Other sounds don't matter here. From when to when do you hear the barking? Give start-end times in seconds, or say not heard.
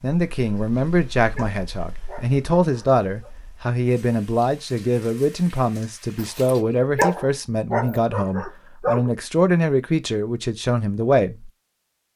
0.6-3.3, 6.2-9.1.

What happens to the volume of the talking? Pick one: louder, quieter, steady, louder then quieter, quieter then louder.
steady.